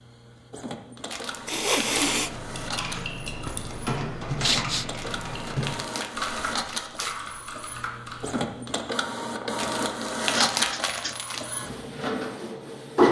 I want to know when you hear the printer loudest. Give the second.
13 s.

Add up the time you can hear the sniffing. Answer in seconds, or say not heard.
2 s.